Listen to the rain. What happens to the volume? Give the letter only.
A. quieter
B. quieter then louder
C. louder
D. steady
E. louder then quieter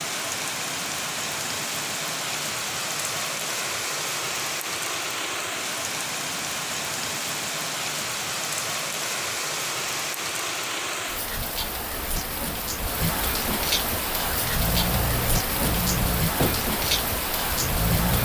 D.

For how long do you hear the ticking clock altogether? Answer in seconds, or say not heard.
not heard.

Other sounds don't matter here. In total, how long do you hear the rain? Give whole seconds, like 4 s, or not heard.
18 s.